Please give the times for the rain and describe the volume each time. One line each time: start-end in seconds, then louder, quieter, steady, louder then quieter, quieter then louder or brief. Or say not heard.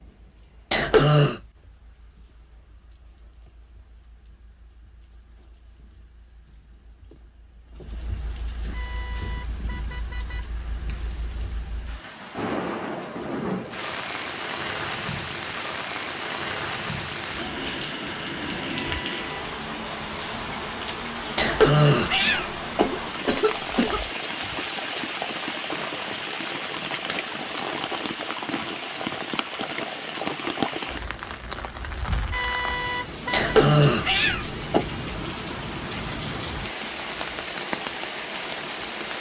0.0-39.1 louder.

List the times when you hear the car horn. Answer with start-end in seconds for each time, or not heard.
8.7-10.4, 18.9-19.4, 32.3-33.5.